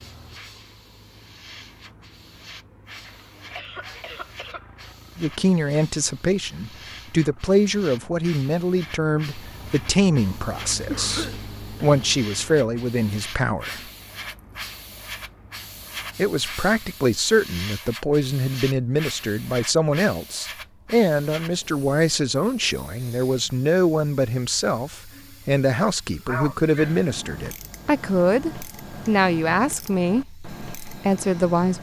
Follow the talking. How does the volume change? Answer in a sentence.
The volume of the talking stays about the same.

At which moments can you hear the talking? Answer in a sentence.
The talking can be heard from 5.2 to 13.8 s and from 16.1 to 31.7 s.